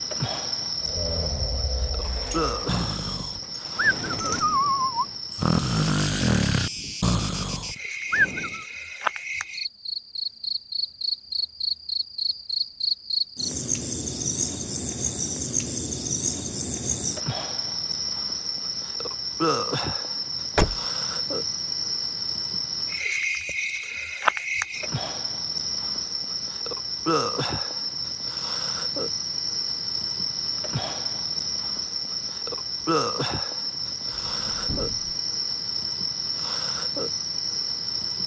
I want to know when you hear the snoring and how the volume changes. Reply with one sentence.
The snoring can be heard from 0.8 to 8.7 s, getting louder.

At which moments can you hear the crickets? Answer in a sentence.
You can hear the crickets from 0.0 to 38.2 s.